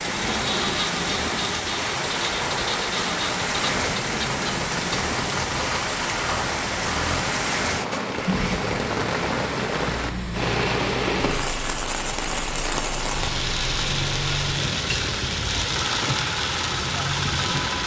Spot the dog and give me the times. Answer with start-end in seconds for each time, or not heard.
not heard.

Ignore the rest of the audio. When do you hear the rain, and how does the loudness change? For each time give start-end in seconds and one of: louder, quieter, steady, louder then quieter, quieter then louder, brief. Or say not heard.
0.0-17.8 steady.